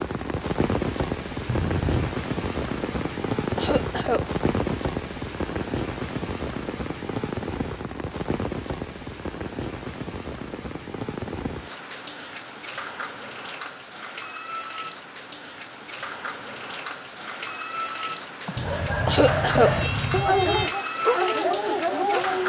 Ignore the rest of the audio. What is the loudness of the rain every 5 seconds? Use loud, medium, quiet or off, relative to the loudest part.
loud, loud, medium, medium, loud.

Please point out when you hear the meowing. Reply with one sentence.
The meowing can be heard from 1.4 to 2.1 s and from 18.6 to 20.8 s.